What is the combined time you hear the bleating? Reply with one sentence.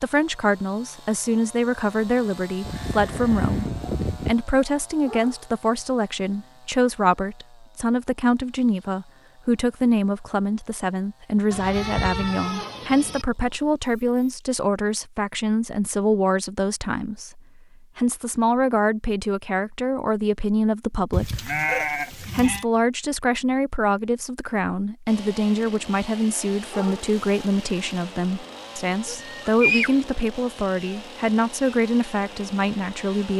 The bleating can be heard for 6 seconds in total.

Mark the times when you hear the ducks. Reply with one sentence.
The ducks can't be heard in this clip.